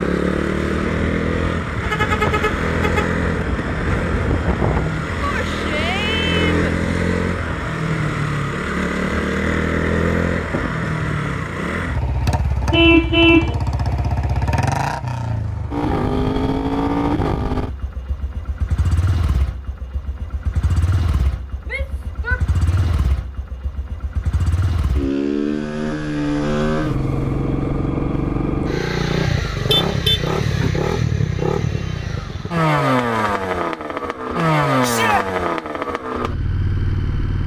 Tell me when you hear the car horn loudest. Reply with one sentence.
The volume of the car horn peaks at 13 seconds.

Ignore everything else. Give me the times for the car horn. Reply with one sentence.
The car horn can be heard from 1.8 to 3.1 s, from 12.7 to 13.6 s and from 29.6 to 30.7 s.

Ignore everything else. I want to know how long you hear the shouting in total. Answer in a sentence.
You can hear the shouting for 3 seconds altogether.